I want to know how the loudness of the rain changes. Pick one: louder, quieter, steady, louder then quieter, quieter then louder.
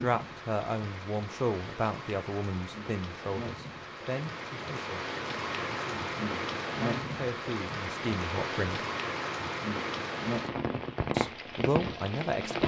louder.